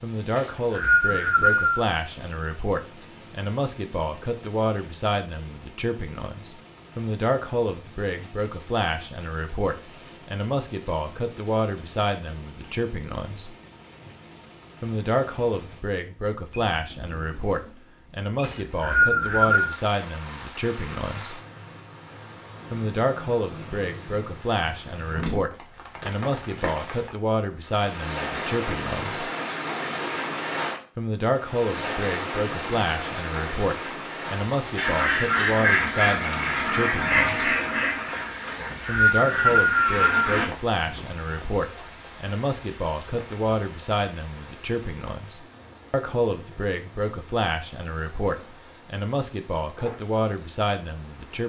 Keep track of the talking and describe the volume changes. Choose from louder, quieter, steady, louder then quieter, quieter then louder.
steady.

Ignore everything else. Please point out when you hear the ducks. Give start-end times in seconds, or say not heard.
34.8-40.5.